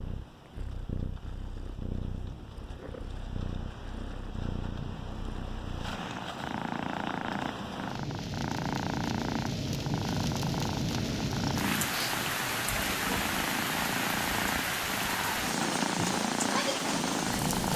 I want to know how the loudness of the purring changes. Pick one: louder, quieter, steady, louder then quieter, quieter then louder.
louder.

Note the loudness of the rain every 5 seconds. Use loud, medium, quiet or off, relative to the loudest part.
quiet, medium, loud, loud.